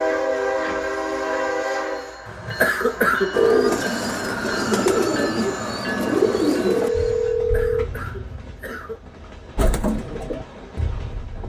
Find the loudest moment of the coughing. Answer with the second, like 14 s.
3 s.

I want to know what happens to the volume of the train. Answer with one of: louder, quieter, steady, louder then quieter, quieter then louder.
quieter.